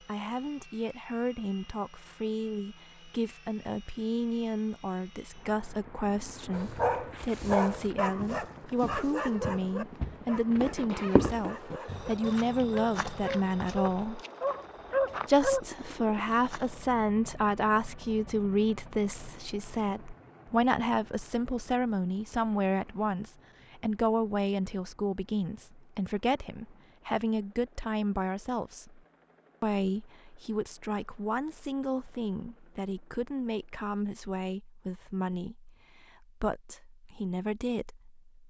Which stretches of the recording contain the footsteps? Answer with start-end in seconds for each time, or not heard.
6.7-16.9.